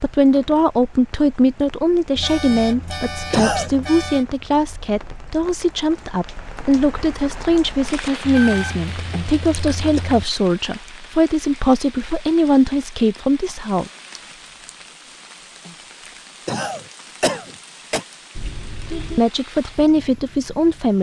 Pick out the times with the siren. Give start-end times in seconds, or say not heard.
not heard.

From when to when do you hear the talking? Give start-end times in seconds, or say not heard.
0.0-13.9, 19.1-20.9.